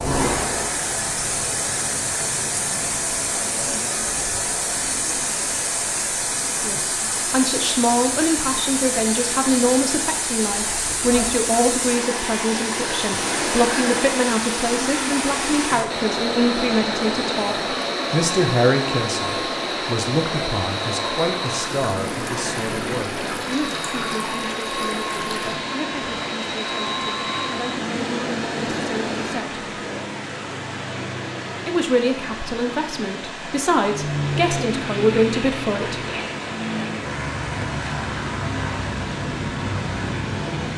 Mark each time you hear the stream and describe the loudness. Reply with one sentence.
You can hear the stream from 0.0 to 40.7 s, getting quieter.